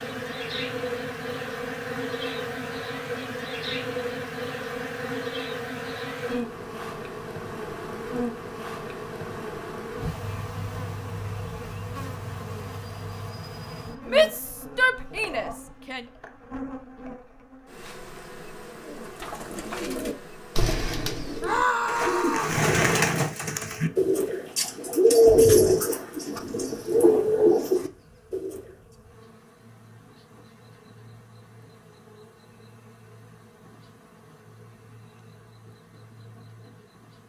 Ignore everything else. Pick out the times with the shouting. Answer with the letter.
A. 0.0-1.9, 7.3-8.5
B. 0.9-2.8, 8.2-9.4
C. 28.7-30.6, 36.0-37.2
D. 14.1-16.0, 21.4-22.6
D.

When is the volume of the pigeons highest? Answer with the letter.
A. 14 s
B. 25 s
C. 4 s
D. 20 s
B.